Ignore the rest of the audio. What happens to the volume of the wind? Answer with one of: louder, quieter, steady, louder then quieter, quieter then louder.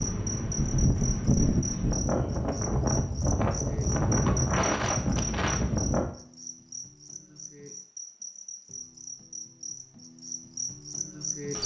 steady.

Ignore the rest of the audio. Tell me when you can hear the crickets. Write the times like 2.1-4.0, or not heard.
0.0-11.6.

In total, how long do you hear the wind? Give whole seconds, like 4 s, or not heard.
6 s.